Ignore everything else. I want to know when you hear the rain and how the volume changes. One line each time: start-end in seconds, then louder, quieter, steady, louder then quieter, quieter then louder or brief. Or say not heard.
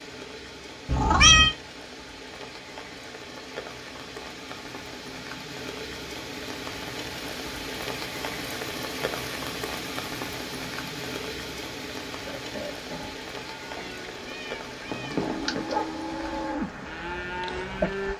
0.0-18.1 louder then quieter.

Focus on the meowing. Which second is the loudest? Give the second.
1 s.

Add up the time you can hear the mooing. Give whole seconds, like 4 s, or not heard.
6 s.